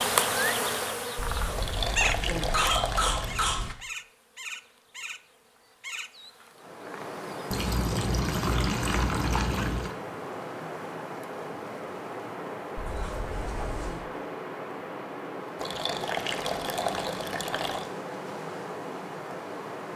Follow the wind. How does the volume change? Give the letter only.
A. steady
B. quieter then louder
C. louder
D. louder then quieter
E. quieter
A.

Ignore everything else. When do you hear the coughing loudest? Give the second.
3 s.